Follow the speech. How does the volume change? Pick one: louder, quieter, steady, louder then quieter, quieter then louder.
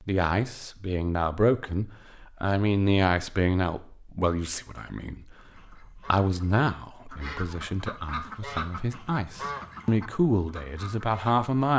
quieter then louder.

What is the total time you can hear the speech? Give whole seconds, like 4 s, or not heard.
12 s.